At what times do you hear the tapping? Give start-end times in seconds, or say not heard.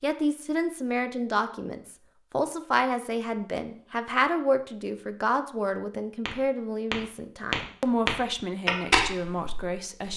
6.2-10.1.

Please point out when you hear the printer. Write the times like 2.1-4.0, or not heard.
not heard.